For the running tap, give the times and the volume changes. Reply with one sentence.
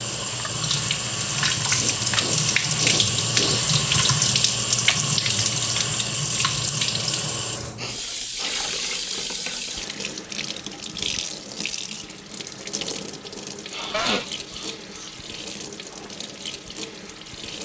You can hear the running tap from 0.0 to 17.5 s, getting quieter.